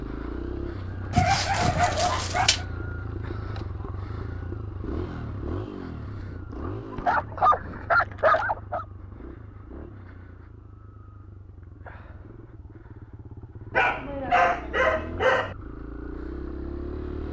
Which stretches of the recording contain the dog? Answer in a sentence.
You can hear the dog from 1.1 to 2.6 s, from 6.5 to 8.8 s and from 13.7 to 15.6 s.